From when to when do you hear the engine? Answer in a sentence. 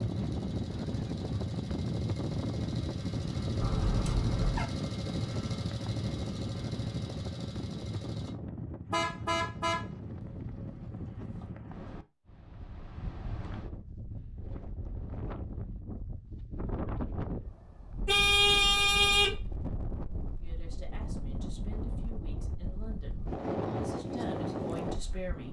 You can hear the engine from 0.0 to 8.3 s.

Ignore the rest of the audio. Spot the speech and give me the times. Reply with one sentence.
You can hear the speech from 20.4 to 25.4 s.